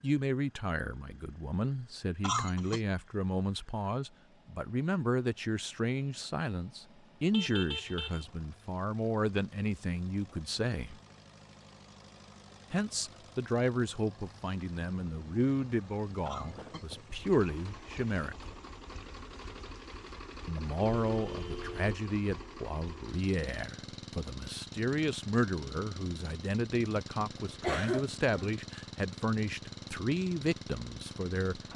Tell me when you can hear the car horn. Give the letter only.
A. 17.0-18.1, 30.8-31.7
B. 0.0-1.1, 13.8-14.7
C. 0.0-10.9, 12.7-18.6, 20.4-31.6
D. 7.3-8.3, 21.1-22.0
D.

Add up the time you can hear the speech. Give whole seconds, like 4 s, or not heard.
28 s.